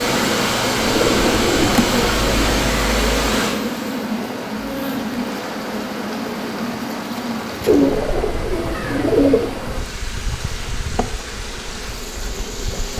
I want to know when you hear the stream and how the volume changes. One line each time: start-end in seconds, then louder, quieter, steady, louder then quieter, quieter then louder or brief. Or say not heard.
0.0-12.9 quieter.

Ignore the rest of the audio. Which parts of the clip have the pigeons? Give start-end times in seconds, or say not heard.
0.8-2.6, 7.7-9.5.